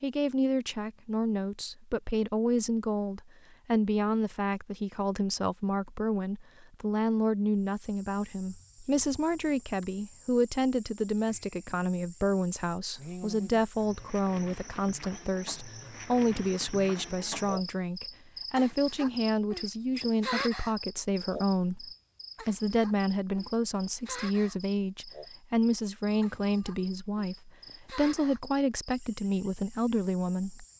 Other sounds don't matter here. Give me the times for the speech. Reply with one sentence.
You can hear the speech from 0.0 to 30.6 s.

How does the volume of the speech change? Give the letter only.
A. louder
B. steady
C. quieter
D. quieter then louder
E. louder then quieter
B.